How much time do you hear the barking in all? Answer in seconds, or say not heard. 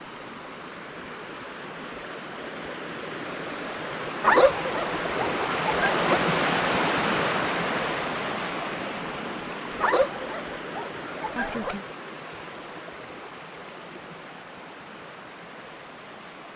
4 s.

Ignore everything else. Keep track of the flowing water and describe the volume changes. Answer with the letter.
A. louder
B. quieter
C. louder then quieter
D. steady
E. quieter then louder
C.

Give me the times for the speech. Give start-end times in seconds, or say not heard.
11.3-11.8.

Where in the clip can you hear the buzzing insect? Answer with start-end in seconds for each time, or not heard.
not heard.